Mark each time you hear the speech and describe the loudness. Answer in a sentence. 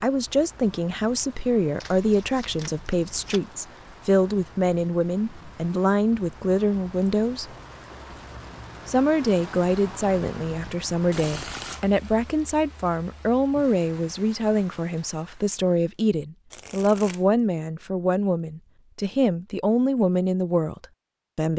You can hear the speech from 0.0 to 7.5 s, at a steady volume; and from 8.8 to 21.5 s, at a steady volume.